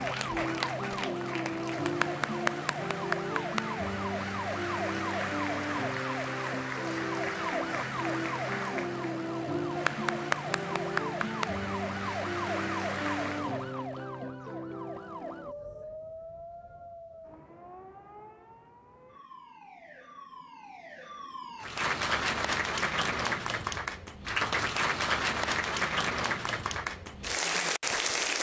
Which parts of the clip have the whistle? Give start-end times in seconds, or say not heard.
not heard.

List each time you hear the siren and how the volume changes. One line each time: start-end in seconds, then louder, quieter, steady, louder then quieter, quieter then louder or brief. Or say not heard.
0.0-21.8 quieter.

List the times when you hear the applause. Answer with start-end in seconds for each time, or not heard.
0.0-13.5, 21.6-28.3.